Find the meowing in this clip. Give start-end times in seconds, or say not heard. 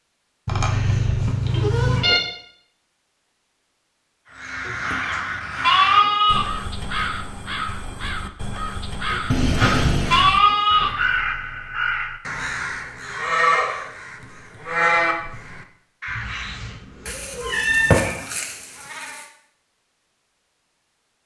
1.4-2.2, 9.3-10.3, 16.1-17.9.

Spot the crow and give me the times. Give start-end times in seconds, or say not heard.
4.3-16.8.